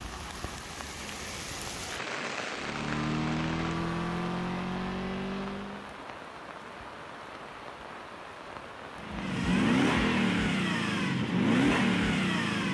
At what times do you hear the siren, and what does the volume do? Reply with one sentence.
The siren can't be heard in this clip.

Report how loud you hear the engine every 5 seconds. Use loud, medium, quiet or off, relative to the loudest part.
medium, loud, loud.